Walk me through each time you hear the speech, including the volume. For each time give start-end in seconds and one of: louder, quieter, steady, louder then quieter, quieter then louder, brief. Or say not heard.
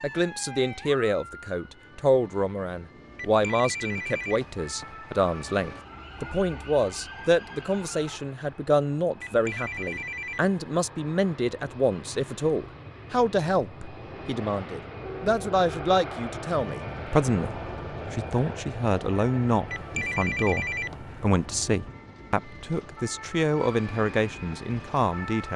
0.0-25.5 steady.